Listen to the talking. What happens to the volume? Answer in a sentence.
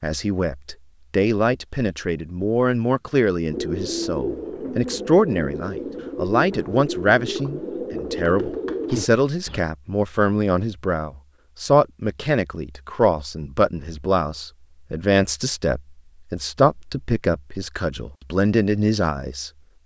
The volume of the talking stays about the same.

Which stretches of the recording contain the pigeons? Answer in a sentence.
You can hear the pigeons from 3.5 to 9.6 s.